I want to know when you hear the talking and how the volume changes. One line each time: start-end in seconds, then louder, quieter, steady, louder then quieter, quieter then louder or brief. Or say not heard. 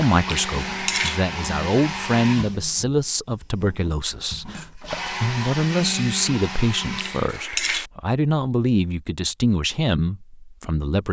0.0-11.0 steady.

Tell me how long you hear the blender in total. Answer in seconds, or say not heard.
7 s.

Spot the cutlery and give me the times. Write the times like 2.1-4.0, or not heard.
0.2-1.2, 7.0-7.9.